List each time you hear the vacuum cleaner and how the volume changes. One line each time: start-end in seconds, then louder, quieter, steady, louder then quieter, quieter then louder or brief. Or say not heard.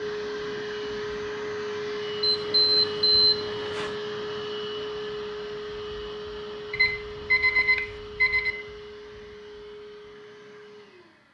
0.0-11.2 quieter.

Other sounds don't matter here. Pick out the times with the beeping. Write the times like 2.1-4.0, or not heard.
2.2-4.0, 6.7-8.6.